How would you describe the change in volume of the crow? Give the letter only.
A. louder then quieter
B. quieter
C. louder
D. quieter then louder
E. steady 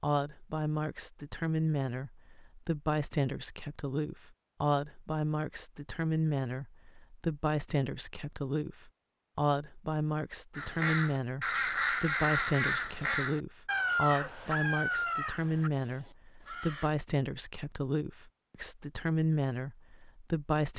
B.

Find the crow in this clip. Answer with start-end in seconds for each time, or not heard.
10.6-16.9.